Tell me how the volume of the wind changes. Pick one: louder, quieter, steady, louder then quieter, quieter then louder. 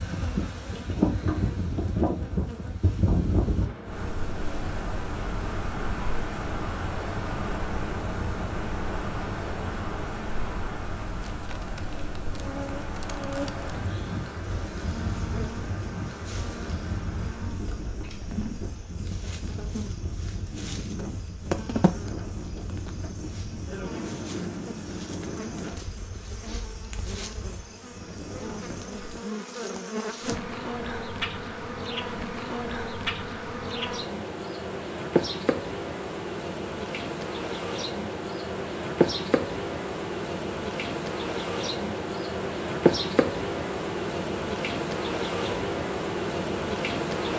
quieter.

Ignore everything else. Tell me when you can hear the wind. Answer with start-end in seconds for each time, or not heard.
0.0-29.2.